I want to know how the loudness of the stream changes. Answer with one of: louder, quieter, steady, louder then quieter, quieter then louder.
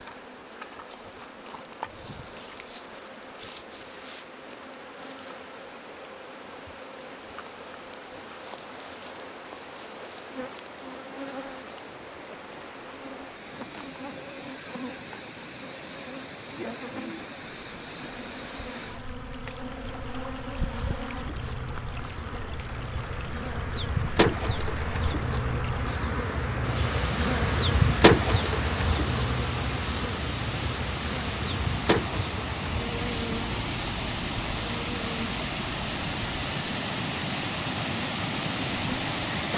louder.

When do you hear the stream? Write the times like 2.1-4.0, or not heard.
0.0-39.5.